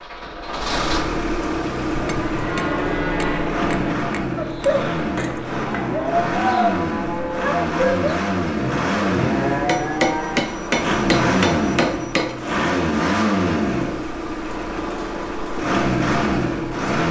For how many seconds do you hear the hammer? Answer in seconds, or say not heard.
5 s.